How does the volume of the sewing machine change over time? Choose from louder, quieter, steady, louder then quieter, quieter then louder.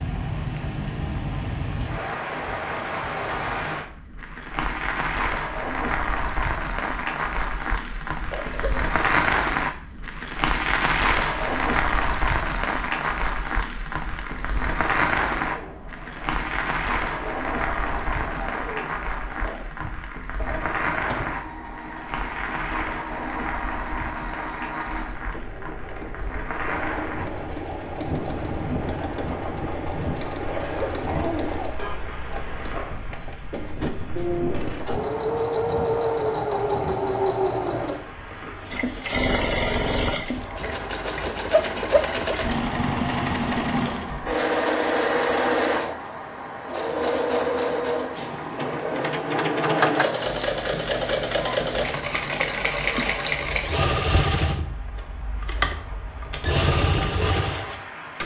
louder.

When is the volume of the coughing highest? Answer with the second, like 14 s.
31 s.